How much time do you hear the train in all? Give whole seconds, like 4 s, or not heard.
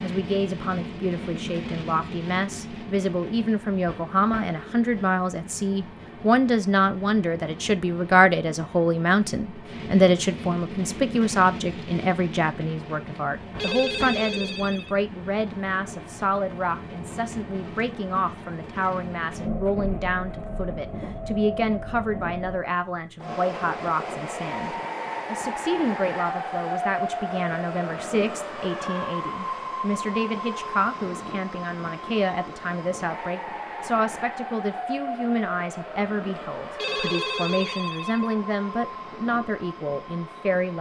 41 s.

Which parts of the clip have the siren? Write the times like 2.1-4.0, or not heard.
not heard.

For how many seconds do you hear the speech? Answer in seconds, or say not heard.
41 s.